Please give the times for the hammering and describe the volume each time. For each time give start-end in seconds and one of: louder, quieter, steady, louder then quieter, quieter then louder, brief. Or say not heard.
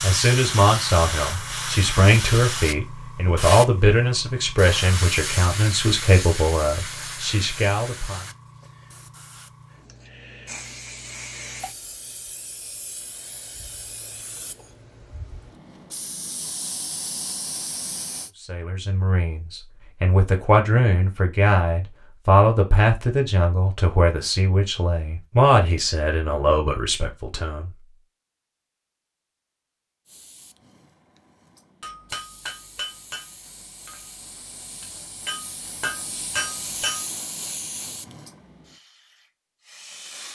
31.8-37.0 quieter then louder.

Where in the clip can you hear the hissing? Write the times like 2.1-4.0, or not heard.
0.0-18.3, 30.1-40.3.